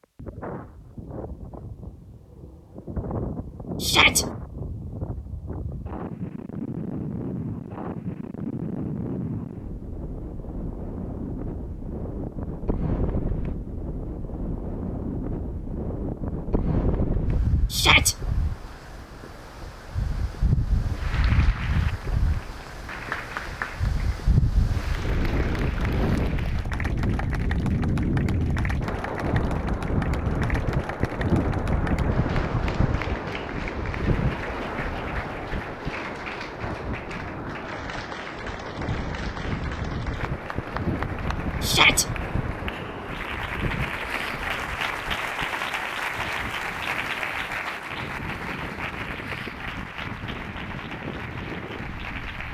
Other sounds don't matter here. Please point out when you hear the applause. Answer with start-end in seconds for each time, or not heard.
20.9-52.4.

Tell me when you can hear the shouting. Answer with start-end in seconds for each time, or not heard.
3.8-4.2, 17.7-18.1, 41.6-42.0.